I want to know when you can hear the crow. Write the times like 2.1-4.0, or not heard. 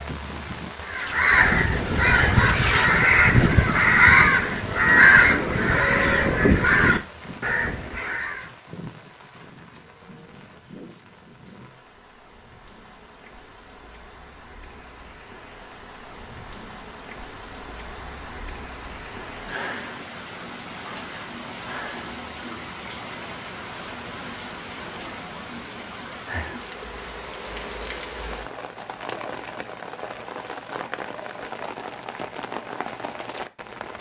0.8-8.4.